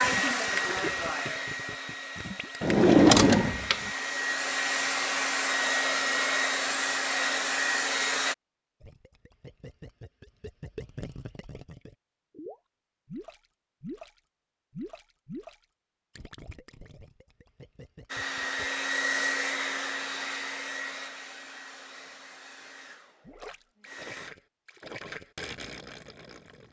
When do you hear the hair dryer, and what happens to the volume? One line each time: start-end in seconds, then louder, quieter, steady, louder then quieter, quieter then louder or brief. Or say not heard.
0.0-8.3 quieter then louder
18.1-24.3 quieter.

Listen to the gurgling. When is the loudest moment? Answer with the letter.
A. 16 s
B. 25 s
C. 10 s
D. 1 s
D.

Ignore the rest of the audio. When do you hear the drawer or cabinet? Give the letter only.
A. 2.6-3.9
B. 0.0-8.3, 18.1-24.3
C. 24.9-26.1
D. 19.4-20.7
A.